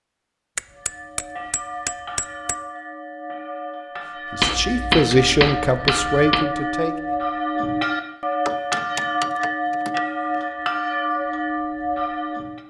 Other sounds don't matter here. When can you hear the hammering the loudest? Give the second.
5 s.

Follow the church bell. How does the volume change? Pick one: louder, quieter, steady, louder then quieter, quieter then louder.
louder.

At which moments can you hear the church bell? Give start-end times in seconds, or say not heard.
0.7-12.6.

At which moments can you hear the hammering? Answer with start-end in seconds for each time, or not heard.
0.6-2.5, 4.3-6.5, 8.4-10.4.